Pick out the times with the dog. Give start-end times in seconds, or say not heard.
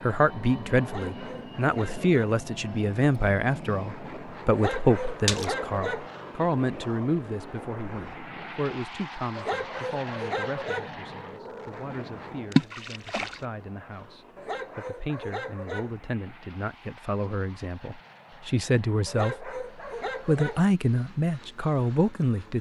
0.8-2.4, 4.5-6.0, 9.3-10.9, 14.3-15.9, 19.1-20.6.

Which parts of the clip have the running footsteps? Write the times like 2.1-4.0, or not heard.
not heard.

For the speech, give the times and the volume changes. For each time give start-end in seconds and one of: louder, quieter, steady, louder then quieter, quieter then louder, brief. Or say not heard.
0.0-19.6 quieter then louder
20.2-22.5 brief.